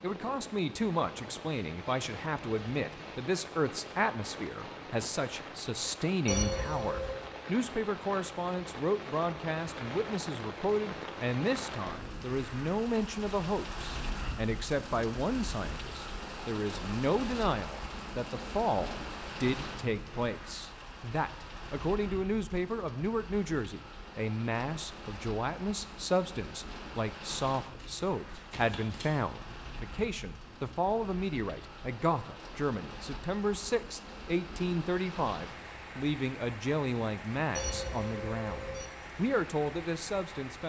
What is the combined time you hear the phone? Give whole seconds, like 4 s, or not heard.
2 s.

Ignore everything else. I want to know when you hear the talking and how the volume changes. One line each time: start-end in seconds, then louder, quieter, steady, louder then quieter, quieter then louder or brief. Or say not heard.
0.0-40.6 steady.